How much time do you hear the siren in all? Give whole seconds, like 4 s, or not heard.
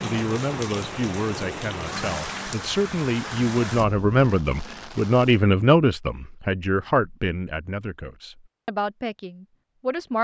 not heard.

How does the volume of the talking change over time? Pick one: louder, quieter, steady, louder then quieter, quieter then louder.
louder then quieter.